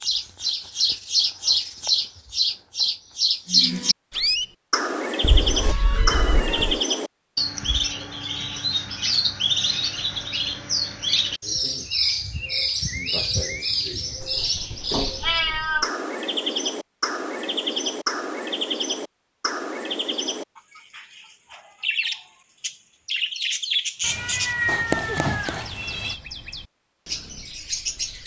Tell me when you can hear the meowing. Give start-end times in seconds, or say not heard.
5.2-6.8, 14.2-15.9, 24.0-26.2.